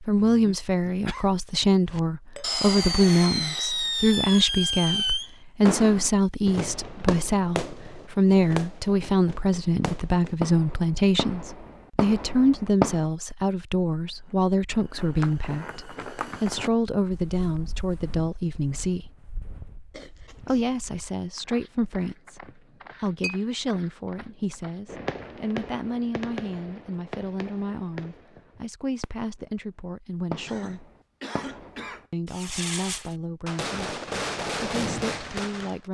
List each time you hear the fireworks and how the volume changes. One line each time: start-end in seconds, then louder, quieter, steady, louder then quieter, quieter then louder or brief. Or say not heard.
1.9-13.0 quieter
24.9-29.2 quieter
30.3-35.8 louder.